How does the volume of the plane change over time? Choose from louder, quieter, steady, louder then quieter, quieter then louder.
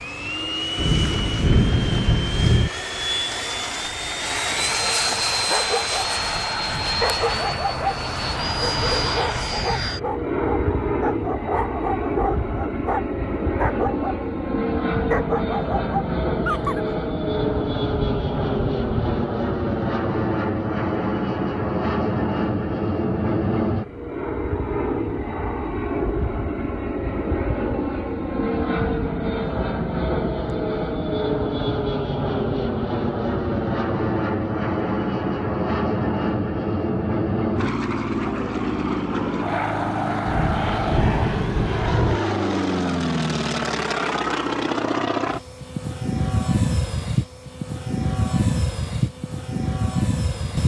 steady.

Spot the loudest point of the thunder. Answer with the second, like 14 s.
2 s.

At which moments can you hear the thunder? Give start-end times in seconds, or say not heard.
0.8-2.7, 17.2-19.2, 40.2-42.2.